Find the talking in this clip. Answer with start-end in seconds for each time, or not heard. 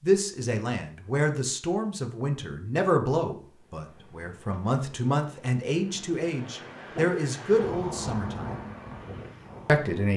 0.0-8.6, 9.7-10.1.